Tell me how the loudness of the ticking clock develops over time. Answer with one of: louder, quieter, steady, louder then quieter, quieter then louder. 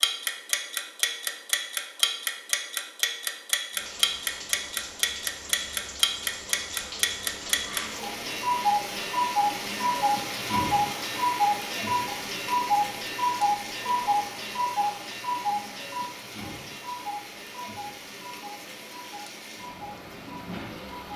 quieter.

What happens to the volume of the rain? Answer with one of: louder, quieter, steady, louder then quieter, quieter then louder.
louder then quieter.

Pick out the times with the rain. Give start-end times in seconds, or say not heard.
3.7-21.1.